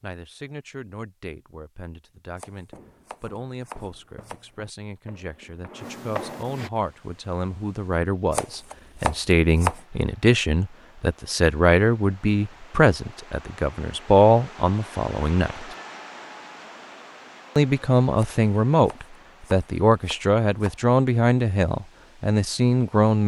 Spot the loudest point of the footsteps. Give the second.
6 s.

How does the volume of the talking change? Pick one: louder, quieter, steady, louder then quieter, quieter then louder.
louder.